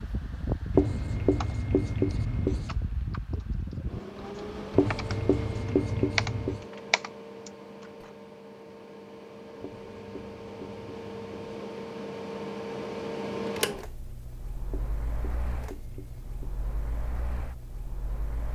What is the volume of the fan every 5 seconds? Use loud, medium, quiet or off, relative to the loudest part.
loud, medium, loud, medium.